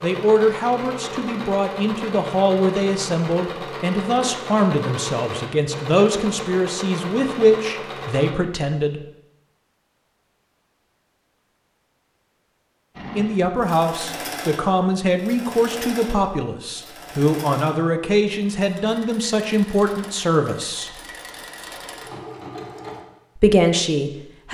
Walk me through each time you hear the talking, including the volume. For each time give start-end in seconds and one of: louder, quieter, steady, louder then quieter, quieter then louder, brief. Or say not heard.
0.0-9.0 steady
13.2-20.9 steady
23.4-24.5 brief.